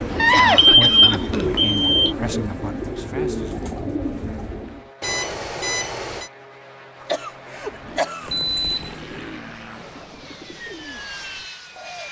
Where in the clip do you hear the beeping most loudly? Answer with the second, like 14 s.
1 s.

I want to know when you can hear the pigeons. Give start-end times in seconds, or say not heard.
0.0-4.9, 7.5-12.0.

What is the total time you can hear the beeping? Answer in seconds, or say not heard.
4 s.